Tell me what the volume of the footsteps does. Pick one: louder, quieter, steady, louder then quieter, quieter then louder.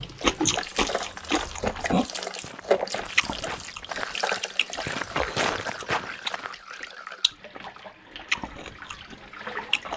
louder.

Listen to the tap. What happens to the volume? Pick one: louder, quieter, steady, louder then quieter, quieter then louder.
quieter.